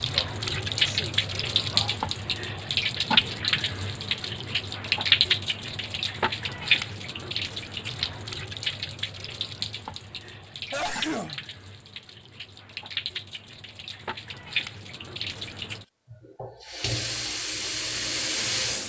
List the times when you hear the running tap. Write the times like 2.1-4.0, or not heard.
0.0-18.8.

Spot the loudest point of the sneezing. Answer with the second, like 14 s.
11 s.